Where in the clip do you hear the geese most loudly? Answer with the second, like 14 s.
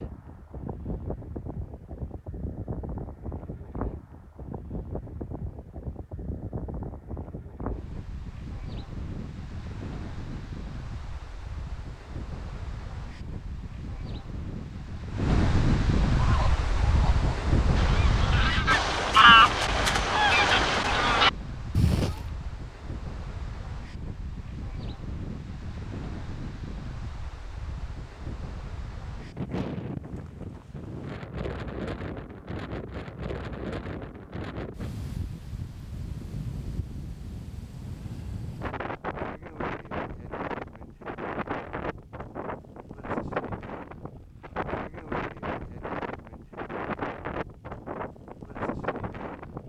19 s.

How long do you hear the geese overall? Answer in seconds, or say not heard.
6 s.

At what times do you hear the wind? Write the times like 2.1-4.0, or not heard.
0.0-49.6.